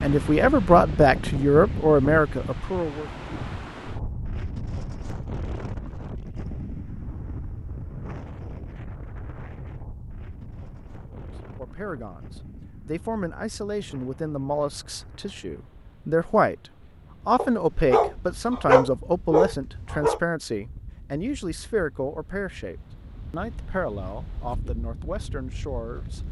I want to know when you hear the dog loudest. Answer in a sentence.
The volume of the dog peaks at 19 seconds.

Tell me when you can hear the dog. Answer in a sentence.
The dog can be heard from 17.4 to 20.2 s.